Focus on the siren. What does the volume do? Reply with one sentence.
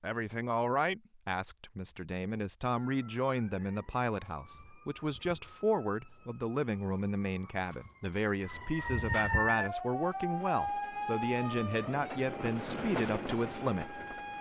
The volume of the siren goes up, then down.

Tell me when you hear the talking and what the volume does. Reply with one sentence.
You can hear the talking from 0.0 to 14.0 s, at a steady volume.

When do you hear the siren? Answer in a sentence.
You can hear the siren from 2.8 to 14.3 s.